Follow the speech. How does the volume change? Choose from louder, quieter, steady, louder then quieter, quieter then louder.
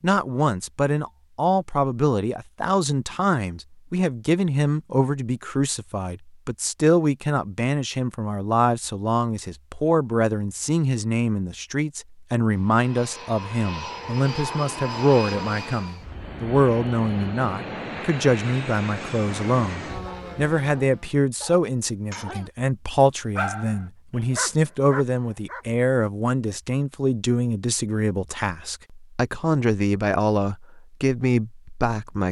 steady.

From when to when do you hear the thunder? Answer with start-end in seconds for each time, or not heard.
not heard.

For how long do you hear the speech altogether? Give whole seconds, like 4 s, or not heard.
32 s.